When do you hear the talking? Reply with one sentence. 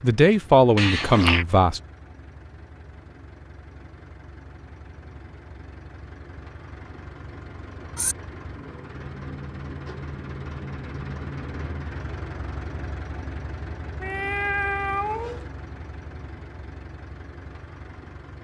You can hear the talking from 0.0 to 1.8 s.